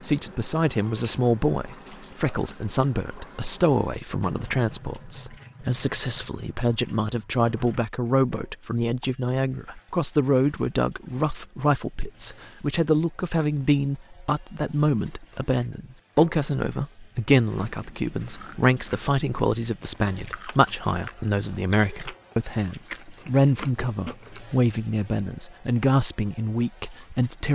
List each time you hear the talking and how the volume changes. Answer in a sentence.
You can hear the talking from 0.0 to 27.5 s, at a steady volume.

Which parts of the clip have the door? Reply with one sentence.
You can't hear the door here.